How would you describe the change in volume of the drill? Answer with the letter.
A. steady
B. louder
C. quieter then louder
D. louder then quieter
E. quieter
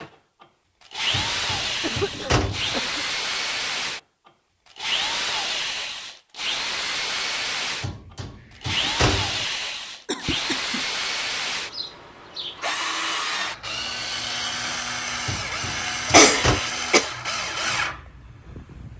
A.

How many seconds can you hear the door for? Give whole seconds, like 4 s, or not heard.
5 s.